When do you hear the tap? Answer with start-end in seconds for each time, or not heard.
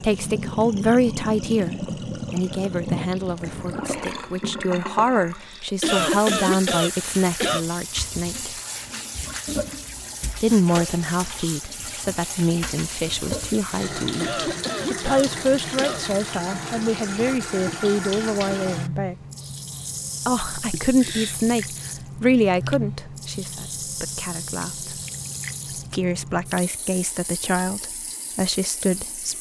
0.0-29.3.